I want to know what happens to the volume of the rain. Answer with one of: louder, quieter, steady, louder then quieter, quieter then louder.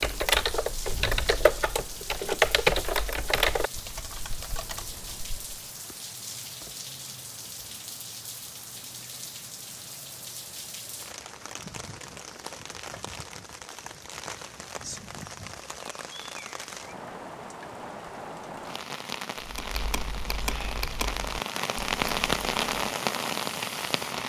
louder.